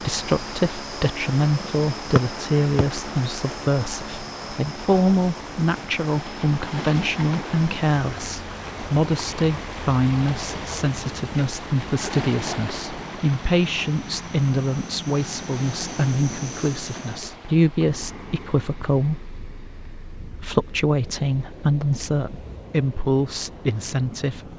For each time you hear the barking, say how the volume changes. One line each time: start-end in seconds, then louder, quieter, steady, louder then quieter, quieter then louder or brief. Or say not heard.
not heard.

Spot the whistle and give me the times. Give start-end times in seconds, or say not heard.
2.1-3.4.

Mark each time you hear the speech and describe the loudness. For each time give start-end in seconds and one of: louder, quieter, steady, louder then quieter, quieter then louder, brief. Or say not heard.
0.1-24.5 steady.